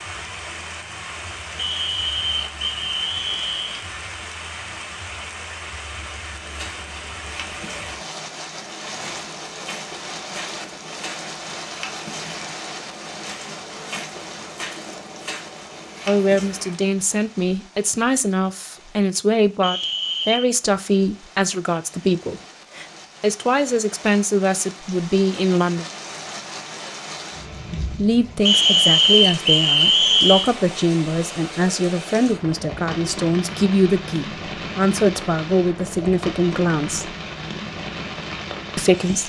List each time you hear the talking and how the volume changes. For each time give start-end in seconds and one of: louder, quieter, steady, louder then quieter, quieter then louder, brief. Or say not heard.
16.1-25.9 steady
27.9-37.1 steady
38.8-39.2 brief.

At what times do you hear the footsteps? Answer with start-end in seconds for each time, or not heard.
6.3-16.8.